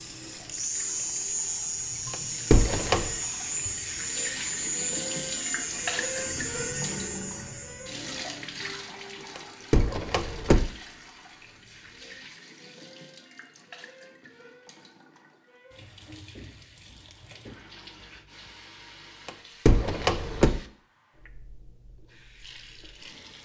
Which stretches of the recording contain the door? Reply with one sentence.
You can hear the door from 2.1 to 3.1 s, from 9.3 to 10.6 s and from 19.2 to 20.6 s.